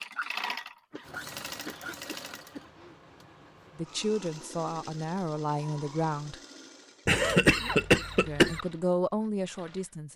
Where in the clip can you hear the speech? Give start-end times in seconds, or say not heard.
3.8-6.4, 8.2-10.1.